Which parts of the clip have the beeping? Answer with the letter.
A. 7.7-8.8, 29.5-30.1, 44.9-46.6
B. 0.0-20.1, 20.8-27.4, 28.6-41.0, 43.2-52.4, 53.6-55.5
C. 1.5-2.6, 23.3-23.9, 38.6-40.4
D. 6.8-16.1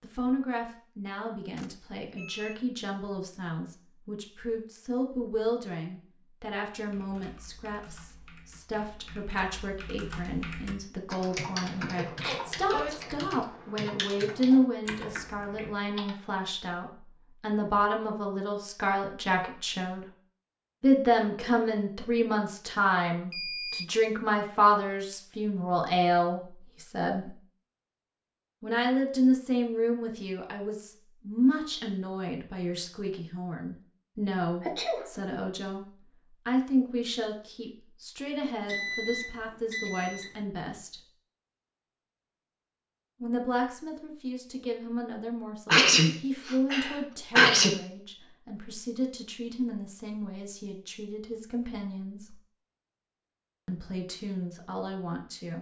C.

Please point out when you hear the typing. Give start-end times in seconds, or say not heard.
6.8-16.1.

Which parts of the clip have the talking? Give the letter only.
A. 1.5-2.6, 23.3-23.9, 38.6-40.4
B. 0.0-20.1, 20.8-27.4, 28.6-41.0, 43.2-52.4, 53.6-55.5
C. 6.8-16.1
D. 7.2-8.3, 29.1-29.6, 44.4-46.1
B.